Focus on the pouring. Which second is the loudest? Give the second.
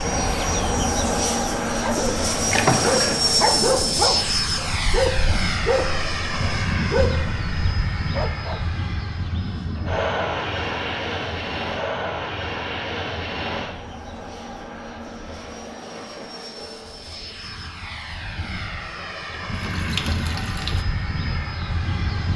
3 s.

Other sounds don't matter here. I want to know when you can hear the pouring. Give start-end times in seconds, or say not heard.
2.5-3.2, 19.5-20.9.